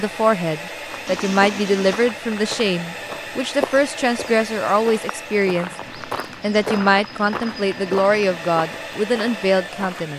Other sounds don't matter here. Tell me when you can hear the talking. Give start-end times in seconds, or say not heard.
0.0-5.7, 6.4-10.1.